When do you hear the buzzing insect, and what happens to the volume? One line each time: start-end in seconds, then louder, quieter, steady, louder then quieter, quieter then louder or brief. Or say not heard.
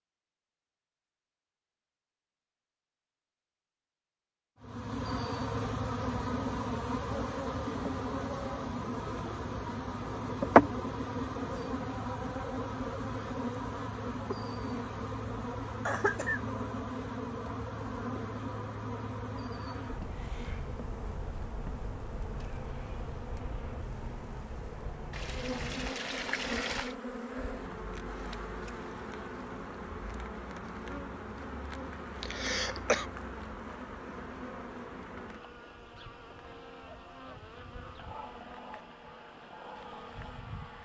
4.6-40.8 quieter.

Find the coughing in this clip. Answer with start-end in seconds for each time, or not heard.
15.8-16.4, 32.2-33.0.